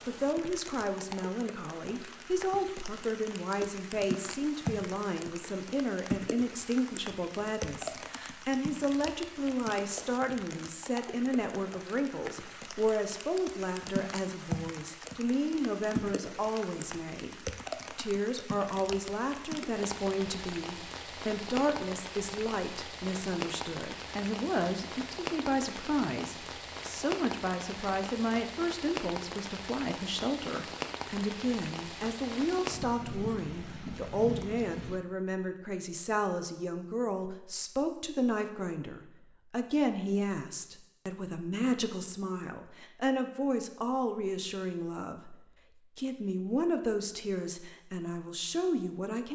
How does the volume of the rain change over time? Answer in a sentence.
The loudness of the rain stays about the same.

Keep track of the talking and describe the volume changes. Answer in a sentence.
The loudness of the talking stays about the same.